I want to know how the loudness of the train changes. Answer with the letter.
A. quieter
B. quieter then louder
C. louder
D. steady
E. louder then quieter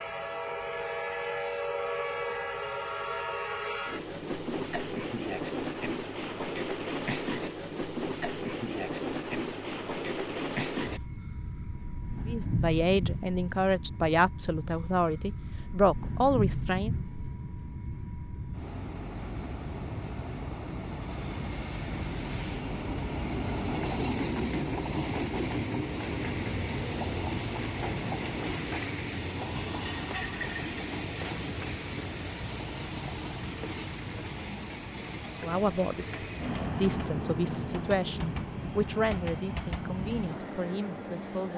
D.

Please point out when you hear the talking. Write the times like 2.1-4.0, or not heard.
12.2-16.9, 35.4-41.5.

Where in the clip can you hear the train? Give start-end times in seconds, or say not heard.
0.0-41.5.